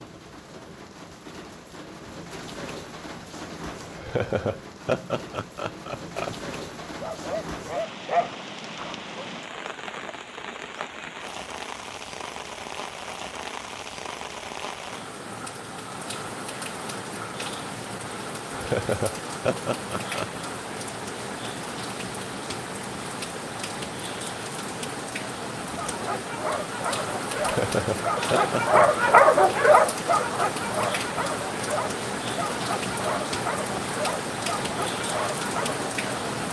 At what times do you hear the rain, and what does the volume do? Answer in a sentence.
You can hear the rain from 0.0 to 36.4 s, getting louder.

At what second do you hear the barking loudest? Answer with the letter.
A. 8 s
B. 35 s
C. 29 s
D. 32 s
C.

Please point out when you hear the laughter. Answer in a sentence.
You can hear the laughter from 3.8 to 6.3 s, from 18.5 to 20.4 s and from 27.4 to 29.1 s.